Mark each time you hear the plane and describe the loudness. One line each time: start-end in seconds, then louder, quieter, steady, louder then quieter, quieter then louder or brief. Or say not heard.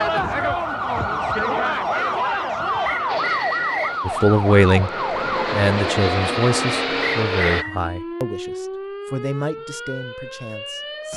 3.0-7.7 louder.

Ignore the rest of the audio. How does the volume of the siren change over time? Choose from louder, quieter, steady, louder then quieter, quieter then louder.
quieter.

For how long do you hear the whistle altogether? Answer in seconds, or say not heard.
2 s.